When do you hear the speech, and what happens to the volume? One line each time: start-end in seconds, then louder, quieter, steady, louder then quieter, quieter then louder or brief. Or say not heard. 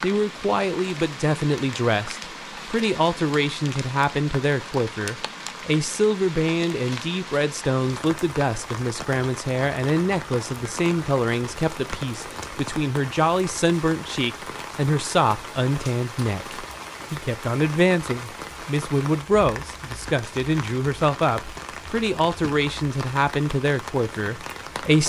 0.0-25.0 steady.